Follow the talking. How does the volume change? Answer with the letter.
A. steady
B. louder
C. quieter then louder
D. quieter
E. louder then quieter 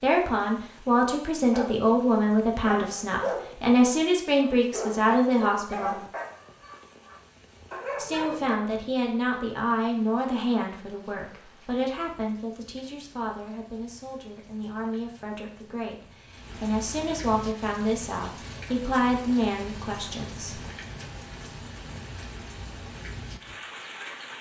C.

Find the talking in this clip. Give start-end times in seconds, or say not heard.
0.0-6.0, 8.0-20.6.